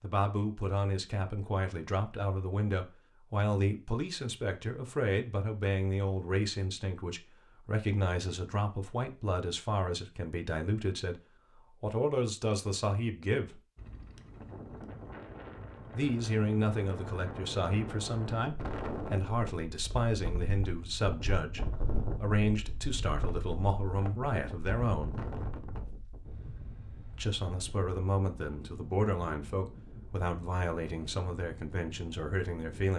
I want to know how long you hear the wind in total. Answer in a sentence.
The wind can be heard for 19 seconds in total.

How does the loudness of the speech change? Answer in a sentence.
The volume of the speech stays about the same.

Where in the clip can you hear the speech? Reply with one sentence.
The speech can be heard from 0.0 to 13.6 s, from 15.9 to 25.1 s and from 27.1 to 32.9 s.